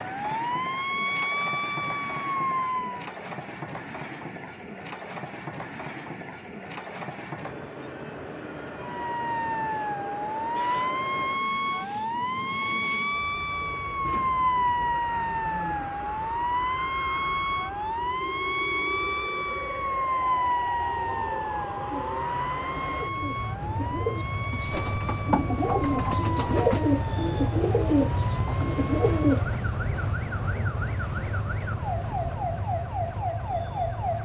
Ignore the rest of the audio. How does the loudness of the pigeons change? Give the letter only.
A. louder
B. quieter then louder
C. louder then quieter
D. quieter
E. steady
A.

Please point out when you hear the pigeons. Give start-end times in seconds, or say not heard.
21.9-29.6.